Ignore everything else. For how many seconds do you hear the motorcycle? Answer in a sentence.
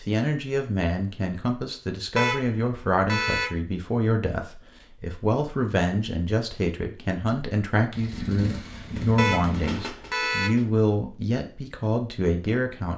The motorcycle can be heard for 3 seconds in total.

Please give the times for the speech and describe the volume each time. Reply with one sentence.
The speech can be heard from 0.0 to 12.9 s, at a steady volume.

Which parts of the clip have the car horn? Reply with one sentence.
You can hear the car horn from 2.1 to 3.5 s and from 9.2 to 10.6 s.